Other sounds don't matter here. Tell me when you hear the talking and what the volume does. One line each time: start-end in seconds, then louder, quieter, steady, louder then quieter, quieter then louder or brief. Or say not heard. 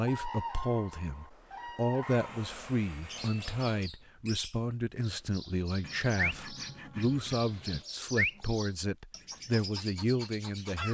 0.0-10.9 steady.